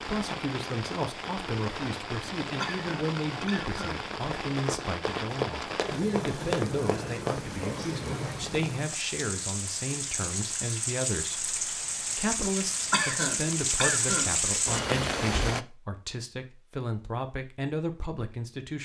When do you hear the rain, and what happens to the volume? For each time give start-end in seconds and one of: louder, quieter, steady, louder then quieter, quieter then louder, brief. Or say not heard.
0.0-15.7 louder.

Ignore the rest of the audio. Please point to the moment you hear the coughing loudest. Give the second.
13 s.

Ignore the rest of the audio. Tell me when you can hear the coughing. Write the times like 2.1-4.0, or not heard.
2.6-4.0, 12.9-14.3.